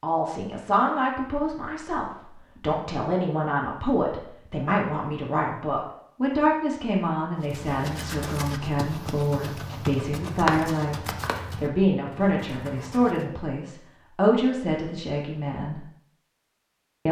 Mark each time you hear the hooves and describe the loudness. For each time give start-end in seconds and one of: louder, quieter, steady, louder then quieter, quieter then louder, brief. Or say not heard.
7.4-13.2 louder then quieter.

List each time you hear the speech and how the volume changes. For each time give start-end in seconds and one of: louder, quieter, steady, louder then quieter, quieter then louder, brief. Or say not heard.
0.0-15.8 steady.